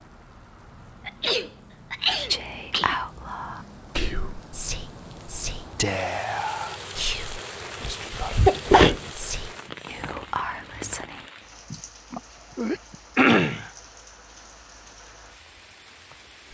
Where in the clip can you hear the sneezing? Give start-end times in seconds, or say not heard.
1.1-3.0, 8.4-9.1, 11.7-13.7.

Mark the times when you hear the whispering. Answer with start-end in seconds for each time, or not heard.
2.1-11.2.